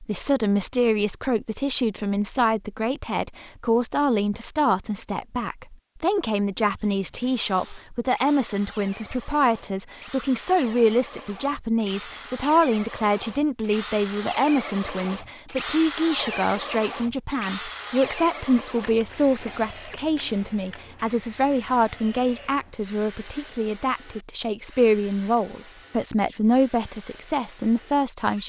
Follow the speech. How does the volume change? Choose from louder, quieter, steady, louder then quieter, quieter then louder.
steady.